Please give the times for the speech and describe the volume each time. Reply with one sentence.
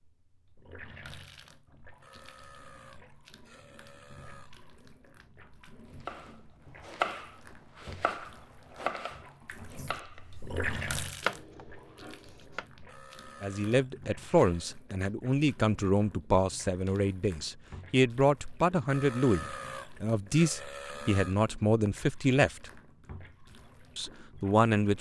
The speech can be heard from 13.4 to 22.7 s, at a steady volume; and briefly from 23.9 to 24.9 s.